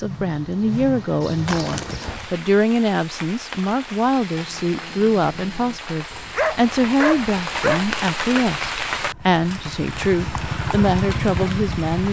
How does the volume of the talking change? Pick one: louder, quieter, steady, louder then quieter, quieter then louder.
steady.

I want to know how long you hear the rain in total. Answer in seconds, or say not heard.
10 s.